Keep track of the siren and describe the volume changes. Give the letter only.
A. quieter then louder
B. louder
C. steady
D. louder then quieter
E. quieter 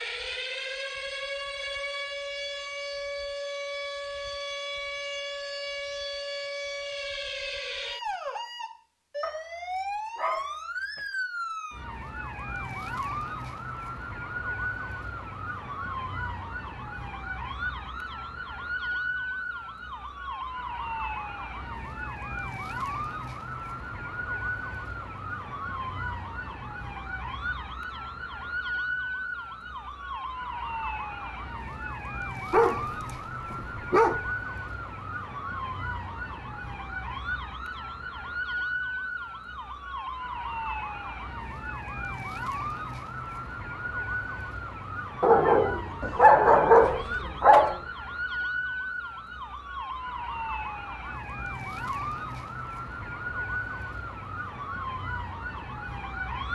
C.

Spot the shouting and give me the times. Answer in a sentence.
The shouting can't be heard in this clip.